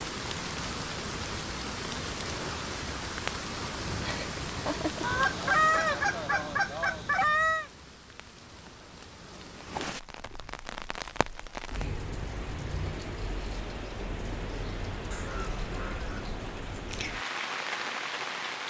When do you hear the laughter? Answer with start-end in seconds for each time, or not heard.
4.0-5.2.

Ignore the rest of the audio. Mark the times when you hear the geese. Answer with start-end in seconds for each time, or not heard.
5.0-7.7, 15.1-16.2.